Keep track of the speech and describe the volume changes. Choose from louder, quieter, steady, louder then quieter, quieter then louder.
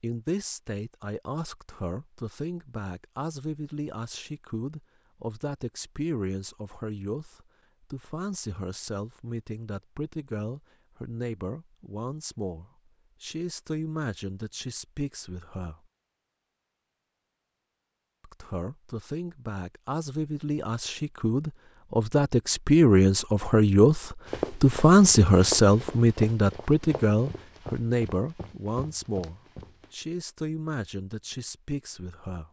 louder then quieter.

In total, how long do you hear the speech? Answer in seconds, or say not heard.
30 s.